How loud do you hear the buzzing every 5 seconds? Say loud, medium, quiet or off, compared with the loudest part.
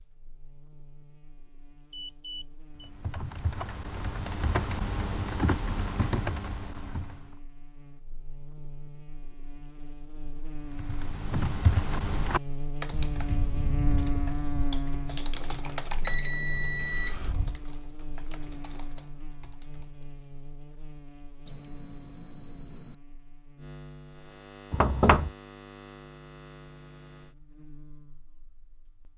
quiet, quiet, loud, medium, quiet, quiet.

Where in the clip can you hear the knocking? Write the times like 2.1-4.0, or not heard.
24.7-25.3.